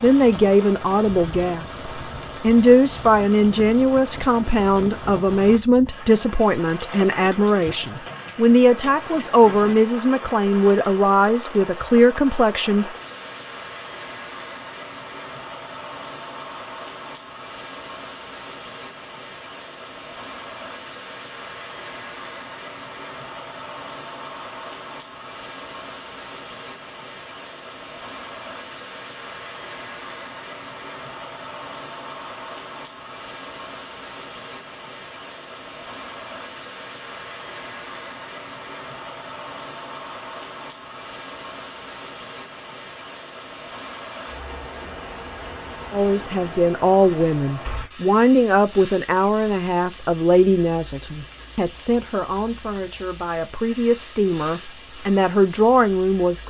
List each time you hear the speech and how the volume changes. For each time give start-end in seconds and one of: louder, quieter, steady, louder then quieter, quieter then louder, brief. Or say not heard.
0.0-12.9 steady
45.9-56.4 quieter then louder.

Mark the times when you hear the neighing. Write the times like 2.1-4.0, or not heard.
not heard.